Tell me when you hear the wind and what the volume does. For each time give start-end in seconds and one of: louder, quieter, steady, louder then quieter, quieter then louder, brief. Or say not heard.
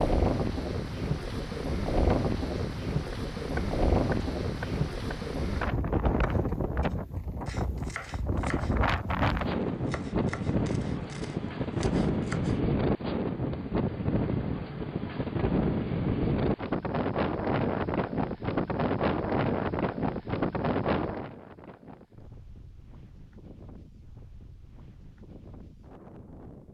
0.0-26.6 quieter.